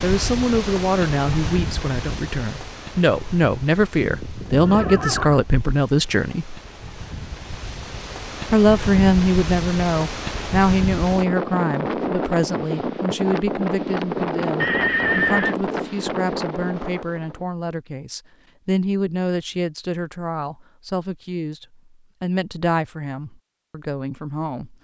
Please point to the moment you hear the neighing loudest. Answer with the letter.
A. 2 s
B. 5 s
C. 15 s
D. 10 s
C.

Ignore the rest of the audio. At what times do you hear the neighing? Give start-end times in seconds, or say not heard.
4.0-5.5, 14.6-15.6.